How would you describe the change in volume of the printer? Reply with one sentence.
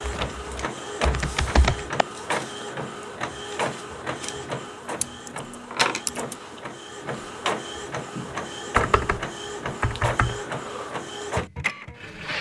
The loudness of the printer stays about the same.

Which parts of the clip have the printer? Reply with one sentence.
You can hear the printer from 0.0 to 12.3 s.